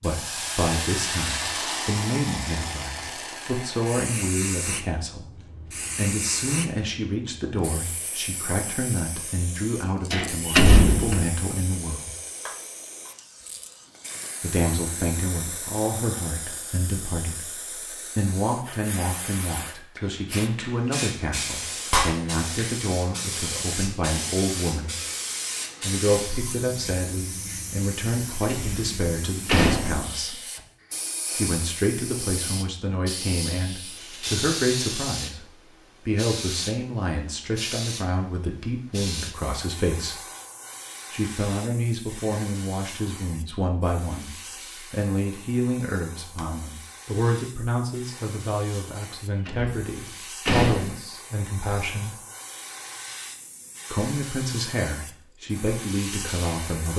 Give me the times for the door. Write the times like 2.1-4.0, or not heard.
10.1-11.3, 28.4-30.1, 49.5-51.0.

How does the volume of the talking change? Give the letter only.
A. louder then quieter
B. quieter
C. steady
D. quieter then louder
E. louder
C.